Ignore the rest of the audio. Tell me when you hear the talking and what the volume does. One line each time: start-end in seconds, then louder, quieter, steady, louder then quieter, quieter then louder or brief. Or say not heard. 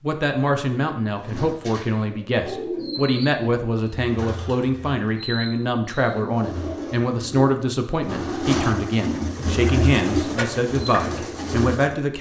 0.0-12.1 steady.